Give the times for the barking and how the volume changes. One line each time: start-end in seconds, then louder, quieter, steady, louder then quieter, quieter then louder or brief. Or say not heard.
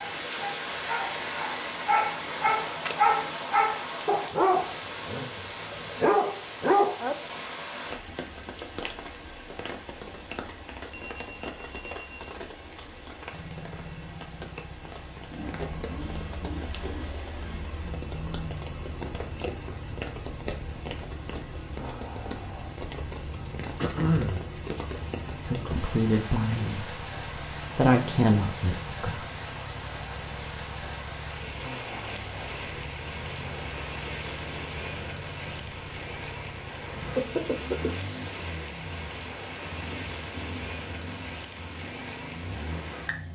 0.0-7.2 louder.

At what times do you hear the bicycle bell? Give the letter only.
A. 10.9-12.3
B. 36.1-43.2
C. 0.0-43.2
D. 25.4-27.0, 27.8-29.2
A.